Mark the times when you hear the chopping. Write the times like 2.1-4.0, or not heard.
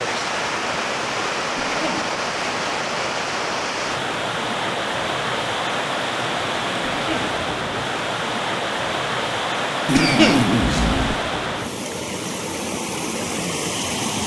not heard.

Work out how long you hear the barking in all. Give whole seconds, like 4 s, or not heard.
not heard.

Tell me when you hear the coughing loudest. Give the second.
10 s.